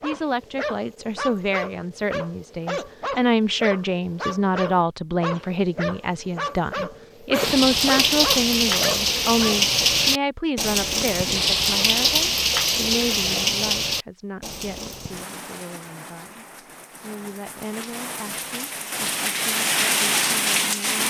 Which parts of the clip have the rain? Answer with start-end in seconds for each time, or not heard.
7.3-21.0.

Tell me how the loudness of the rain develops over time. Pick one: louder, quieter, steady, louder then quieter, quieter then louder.
quieter then louder.